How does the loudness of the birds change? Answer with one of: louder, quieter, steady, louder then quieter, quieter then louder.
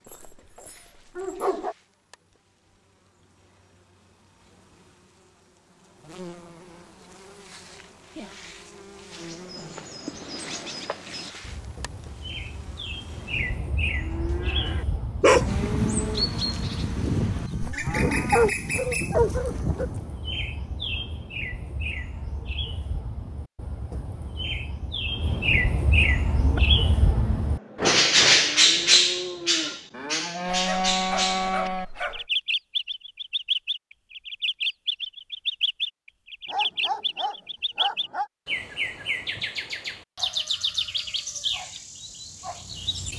louder then quieter.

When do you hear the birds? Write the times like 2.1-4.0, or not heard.
9.2-43.1.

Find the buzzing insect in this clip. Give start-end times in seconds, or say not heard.
0.0-13.7, 41.0-43.1.